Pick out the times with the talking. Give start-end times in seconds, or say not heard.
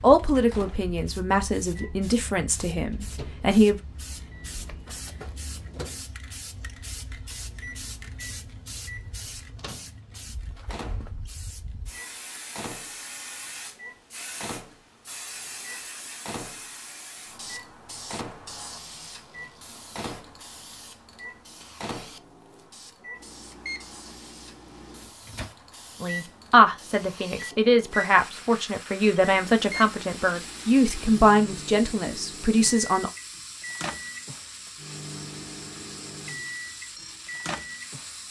0.0-3.8, 26.0-33.1.